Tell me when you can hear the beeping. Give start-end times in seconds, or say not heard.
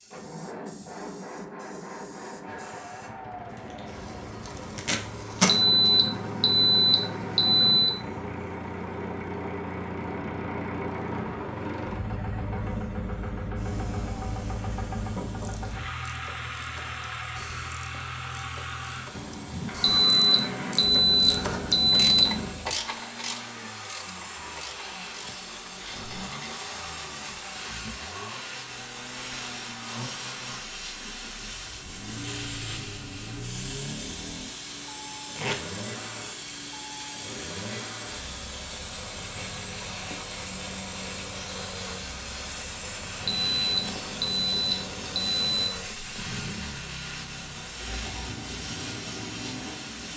5.5-7.9, 19.8-22.5, 43.2-45.7.